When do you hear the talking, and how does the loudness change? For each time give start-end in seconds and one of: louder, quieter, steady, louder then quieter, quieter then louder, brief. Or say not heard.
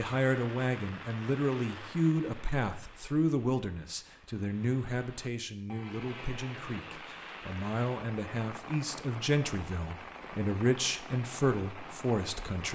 0.0-12.7 quieter then louder.